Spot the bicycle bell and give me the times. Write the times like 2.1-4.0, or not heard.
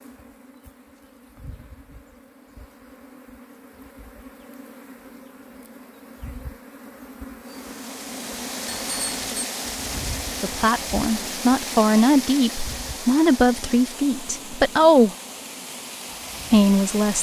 8.7-9.4.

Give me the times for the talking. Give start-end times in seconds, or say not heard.
10.4-15.2, 16.5-17.1.